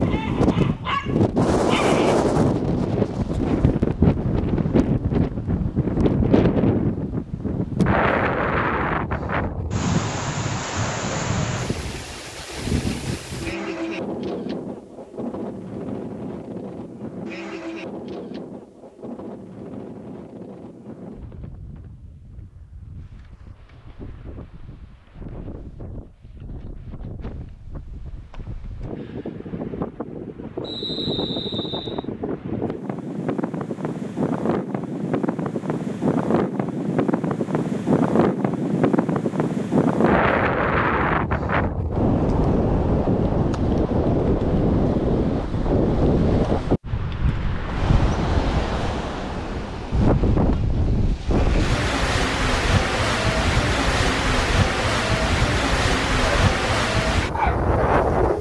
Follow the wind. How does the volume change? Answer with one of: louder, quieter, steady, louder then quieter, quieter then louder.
quieter then louder.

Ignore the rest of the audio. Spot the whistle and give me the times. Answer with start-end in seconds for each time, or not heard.
30.6-32.0.